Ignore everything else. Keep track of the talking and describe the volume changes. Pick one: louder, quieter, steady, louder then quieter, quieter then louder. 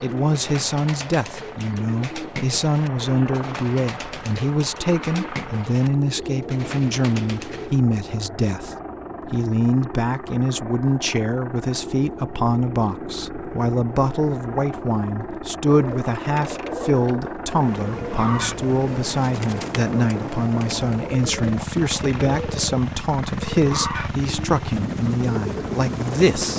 steady.